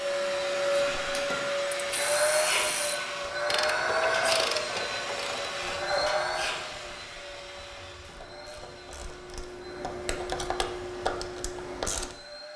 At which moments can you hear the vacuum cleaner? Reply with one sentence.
You can hear the vacuum cleaner from 0.0 to 12.5 s.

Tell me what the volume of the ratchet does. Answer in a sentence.
The loudness of the ratchet goes down, then up.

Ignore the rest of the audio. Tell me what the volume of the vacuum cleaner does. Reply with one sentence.
The volume of the vacuum cleaner goes down.